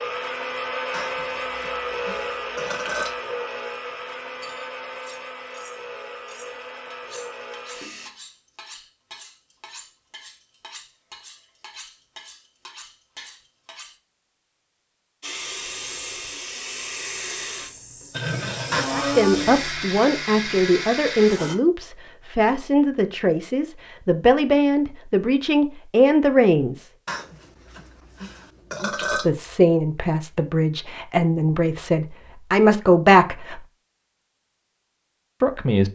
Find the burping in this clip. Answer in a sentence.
You can hear the burping from 0.9 to 3.1 s, from 18.7 to 19.9 s and from 27.1 to 29.3 s.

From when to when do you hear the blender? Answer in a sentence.
You can hear the blender from 0.0 to 8.1 s and from 15.2 to 21.6 s.